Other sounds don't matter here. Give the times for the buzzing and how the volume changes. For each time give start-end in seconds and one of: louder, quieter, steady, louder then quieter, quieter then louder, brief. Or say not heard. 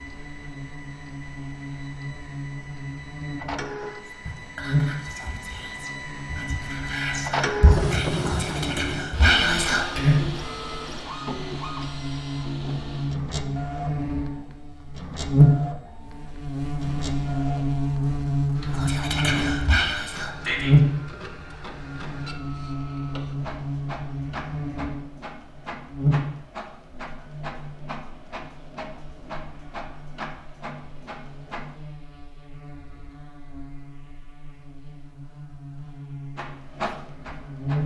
0.0-37.8 louder then quieter.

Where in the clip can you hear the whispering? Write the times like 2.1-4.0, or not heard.
4.0-10.2, 18.7-20.8.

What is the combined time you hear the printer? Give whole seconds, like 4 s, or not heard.
33 s.